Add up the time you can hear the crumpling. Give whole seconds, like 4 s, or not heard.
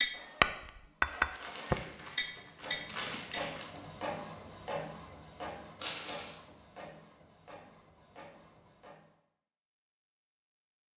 3 s.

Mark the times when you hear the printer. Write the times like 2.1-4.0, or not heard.
0.1-9.1.